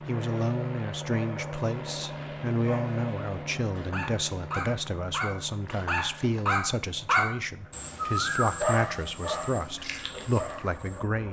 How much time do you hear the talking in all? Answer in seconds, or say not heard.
11 s.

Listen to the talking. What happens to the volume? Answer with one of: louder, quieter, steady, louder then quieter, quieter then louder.
steady.